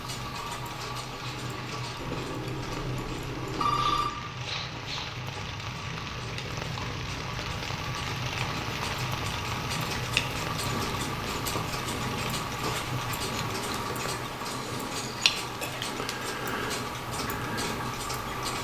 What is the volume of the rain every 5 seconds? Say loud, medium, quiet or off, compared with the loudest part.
medium, loud, loud, medium.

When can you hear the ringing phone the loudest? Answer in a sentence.
The loudest moment of the ringing phone is at 4 seconds.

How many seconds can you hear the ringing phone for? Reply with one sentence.
The ringing phone can be heard for 2 seconds in total.